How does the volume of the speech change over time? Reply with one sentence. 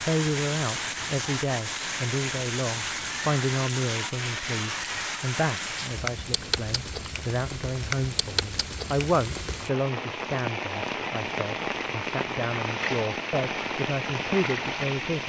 The volume of the speech stays about the same.